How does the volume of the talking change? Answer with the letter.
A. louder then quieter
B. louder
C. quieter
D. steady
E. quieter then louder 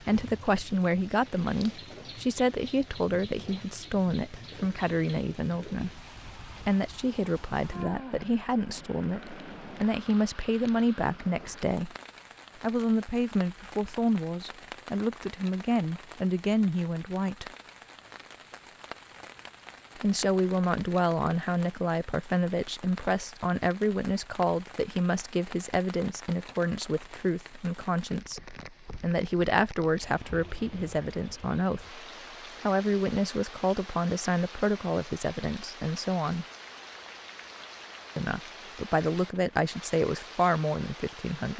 D.